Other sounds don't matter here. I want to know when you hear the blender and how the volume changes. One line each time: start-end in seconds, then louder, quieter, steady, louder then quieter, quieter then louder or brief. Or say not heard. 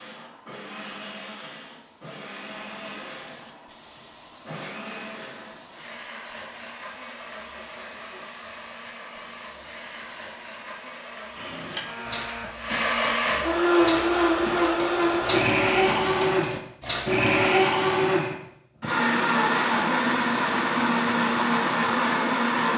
0.0-22.7 louder.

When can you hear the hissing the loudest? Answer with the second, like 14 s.
12 s.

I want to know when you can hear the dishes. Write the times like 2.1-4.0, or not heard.
11.3-17.2.